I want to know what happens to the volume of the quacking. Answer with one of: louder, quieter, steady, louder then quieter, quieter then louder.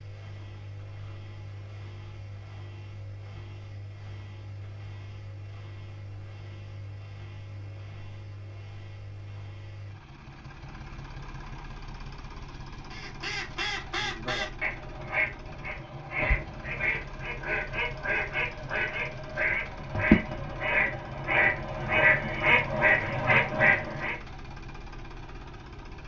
louder.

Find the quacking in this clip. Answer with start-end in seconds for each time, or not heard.
12.9-24.2.